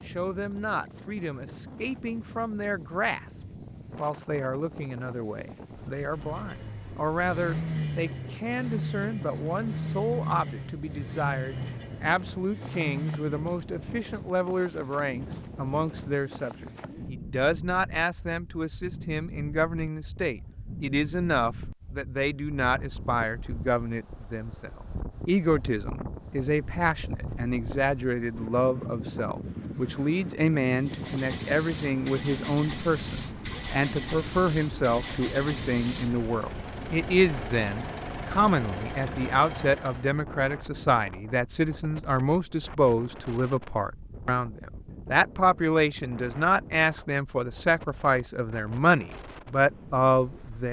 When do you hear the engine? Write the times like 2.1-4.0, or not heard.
6.0-13.5, 30.8-40.1.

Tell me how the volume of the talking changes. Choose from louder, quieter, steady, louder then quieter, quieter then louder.
louder.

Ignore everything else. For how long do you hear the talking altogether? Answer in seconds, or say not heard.
50 s.